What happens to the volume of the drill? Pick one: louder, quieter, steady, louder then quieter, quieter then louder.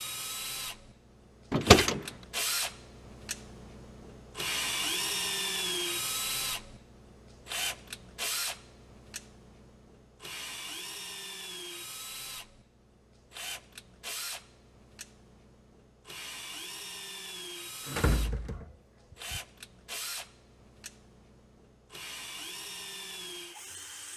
quieter.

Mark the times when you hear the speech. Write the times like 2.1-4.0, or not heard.
not heard.